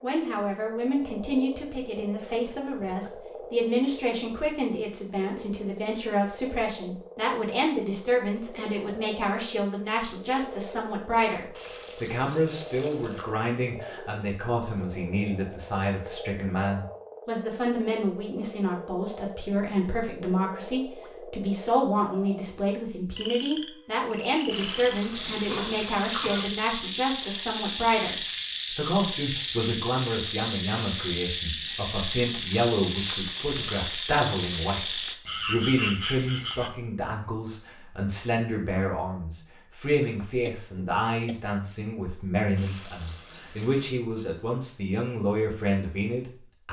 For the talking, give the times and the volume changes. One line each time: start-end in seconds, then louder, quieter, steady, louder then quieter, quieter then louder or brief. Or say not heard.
0.0-46.6 steady.